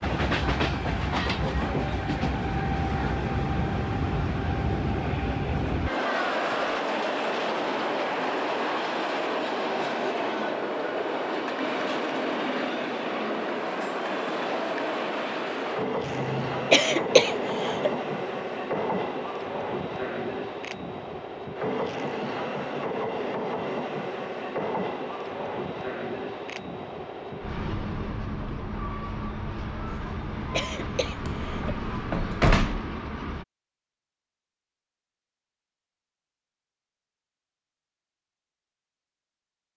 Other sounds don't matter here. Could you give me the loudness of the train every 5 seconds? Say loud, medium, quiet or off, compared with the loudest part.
loud, loud, loud, loud, loud, medium, medium, off.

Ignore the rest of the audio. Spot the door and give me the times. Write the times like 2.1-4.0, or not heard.
5.8-6.8, 31.2-32.8.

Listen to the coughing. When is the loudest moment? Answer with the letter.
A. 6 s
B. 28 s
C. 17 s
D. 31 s
C.